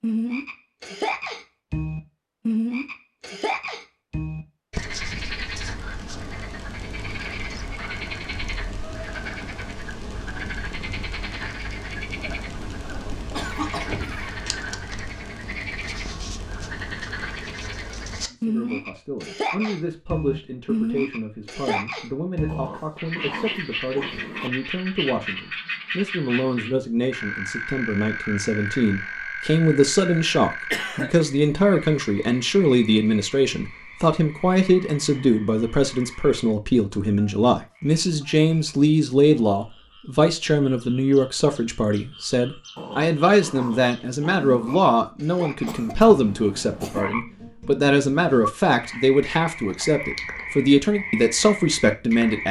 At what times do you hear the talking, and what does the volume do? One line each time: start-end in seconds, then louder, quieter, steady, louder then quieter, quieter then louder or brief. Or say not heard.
18.3-52.4 louder.